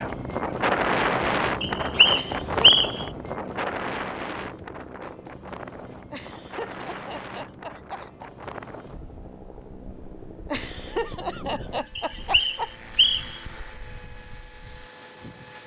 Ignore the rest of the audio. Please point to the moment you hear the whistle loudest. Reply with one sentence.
The volume of the whistle peaks at 3 seconds.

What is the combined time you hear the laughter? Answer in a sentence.
You can hear the laughter for 5 seconds altogether.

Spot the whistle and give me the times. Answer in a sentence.
You can hear the whistle from 1.6 to 3.0 s and from 11.9 to 13.4 s.